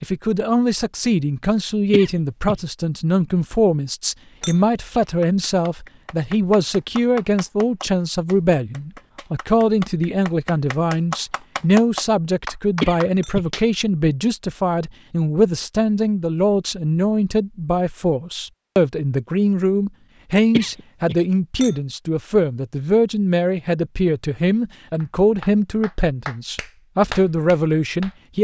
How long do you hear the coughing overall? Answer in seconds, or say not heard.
2 s.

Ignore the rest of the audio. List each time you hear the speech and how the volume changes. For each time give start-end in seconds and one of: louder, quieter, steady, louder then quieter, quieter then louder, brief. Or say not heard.
0.0-28.3 steady.